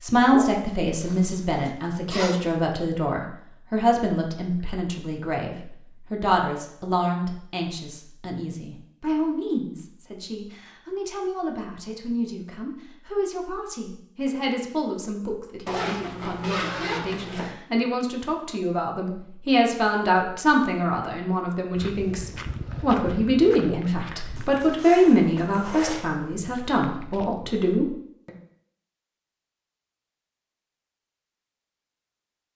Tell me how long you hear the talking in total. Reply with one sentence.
You can hear the talking for 28 seconds altogether.